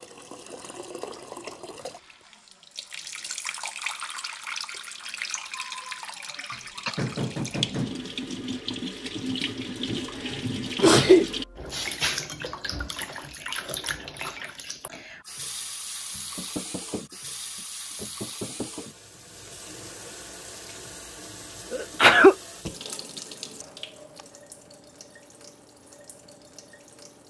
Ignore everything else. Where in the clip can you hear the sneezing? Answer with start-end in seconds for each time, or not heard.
5.5-7.0, 9.8-11.2, 21.7-22.4.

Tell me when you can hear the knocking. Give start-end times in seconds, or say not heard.
6.5-8.1, 16.4-18.9.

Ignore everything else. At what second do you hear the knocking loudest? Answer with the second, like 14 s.
7 s.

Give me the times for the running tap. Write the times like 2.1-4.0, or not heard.
0.0-27.2.